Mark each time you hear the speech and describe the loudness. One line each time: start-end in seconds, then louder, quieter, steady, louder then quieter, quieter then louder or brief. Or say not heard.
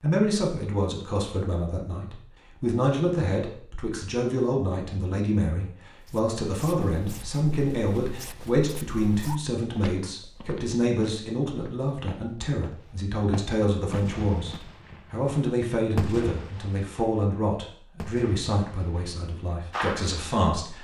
0.0-20.7 steady.